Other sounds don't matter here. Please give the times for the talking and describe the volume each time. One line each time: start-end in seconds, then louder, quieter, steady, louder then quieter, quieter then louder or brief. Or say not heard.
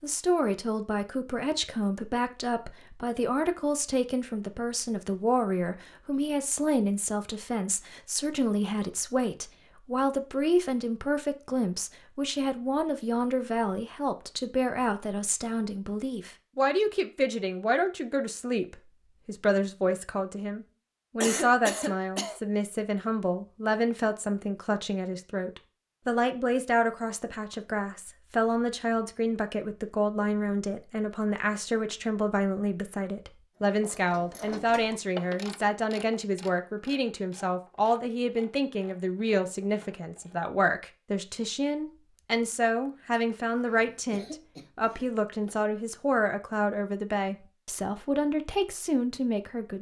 0.0-49.7 steady.